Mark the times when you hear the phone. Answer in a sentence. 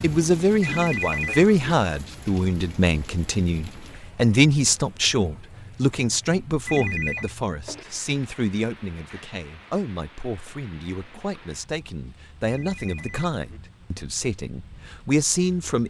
The phone can be heard from 0.6 to 1.8 s, from 6.7 to 7.3 s and from 12.4 to 13.6 s.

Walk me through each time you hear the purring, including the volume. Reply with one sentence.
You can't hear the purring here.